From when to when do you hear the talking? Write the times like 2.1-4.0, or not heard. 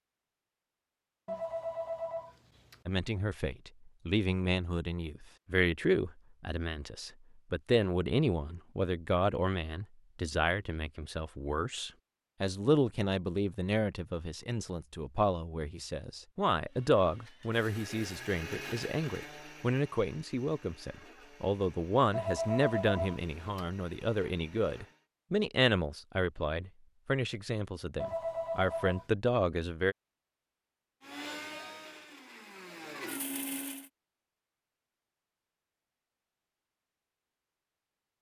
2.9-29.9.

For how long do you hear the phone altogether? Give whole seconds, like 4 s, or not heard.
4 s.